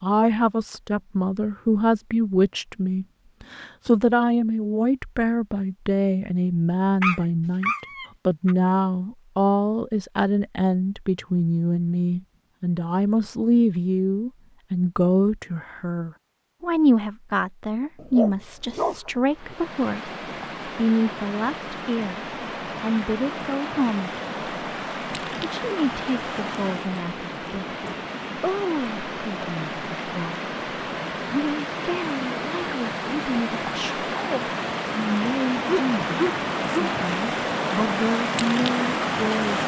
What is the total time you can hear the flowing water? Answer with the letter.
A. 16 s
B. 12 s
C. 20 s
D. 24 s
C.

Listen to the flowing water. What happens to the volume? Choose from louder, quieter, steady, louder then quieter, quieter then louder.
louder.